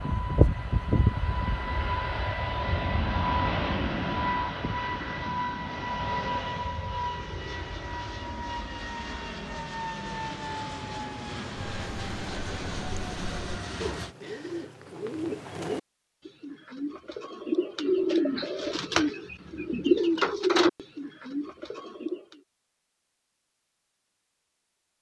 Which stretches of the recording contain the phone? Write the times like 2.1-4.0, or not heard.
not heard.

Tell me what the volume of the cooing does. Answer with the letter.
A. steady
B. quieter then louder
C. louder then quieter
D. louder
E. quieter
D.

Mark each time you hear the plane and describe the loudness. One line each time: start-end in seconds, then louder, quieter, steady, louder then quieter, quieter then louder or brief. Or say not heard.
0.0-14.2 quieter.